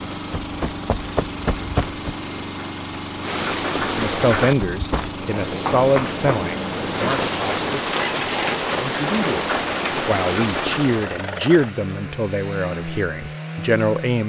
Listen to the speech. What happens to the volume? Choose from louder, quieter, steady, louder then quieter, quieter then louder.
steady.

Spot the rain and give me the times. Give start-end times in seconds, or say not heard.
0.0-11.2.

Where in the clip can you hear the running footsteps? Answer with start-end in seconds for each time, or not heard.
0.0-2.1, 4.6-6.3.